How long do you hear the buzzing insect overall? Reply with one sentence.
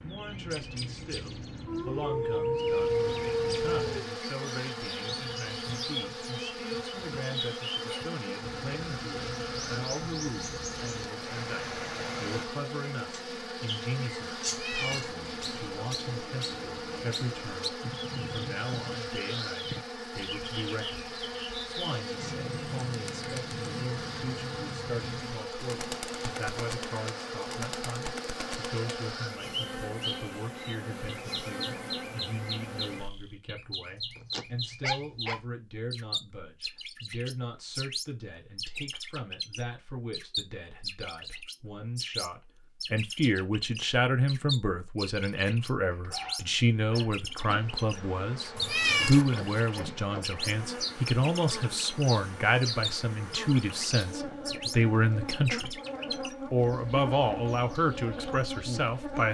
The buzzing insect can be heard for 43 seconds in total.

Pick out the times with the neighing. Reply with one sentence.
You can't hear the neighing here.